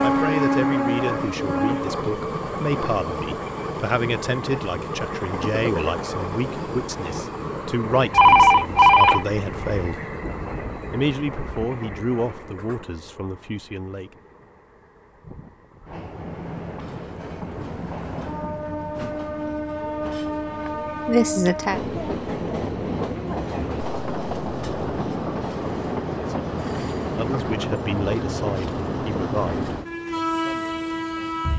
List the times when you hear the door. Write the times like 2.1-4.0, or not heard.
not heard.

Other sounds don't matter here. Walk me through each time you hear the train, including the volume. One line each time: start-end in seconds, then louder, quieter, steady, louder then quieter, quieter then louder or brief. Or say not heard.
0.0-31.5 quieter then louder.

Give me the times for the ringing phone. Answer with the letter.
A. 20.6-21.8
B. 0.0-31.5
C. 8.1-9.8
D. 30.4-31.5
C.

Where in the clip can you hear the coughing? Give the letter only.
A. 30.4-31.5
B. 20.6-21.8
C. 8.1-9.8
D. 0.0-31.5
B.